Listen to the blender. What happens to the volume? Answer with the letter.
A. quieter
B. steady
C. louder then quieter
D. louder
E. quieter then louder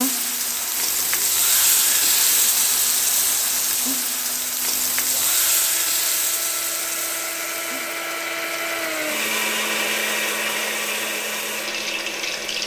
D.